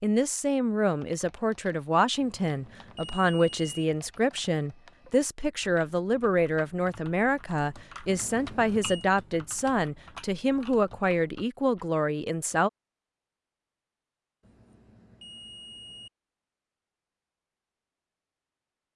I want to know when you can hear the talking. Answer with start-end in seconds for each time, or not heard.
0.0-12.7.